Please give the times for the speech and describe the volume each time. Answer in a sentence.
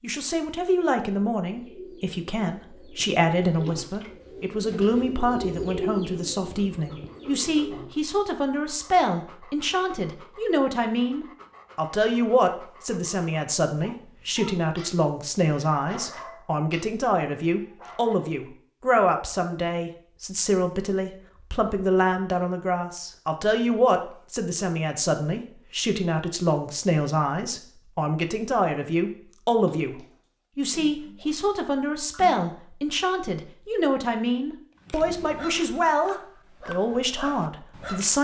The speech can be heard from 0.0 to 38.1 s, at a steady volume.